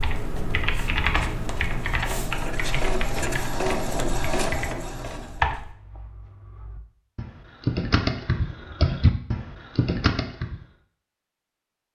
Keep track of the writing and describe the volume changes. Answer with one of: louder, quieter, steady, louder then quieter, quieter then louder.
quieter.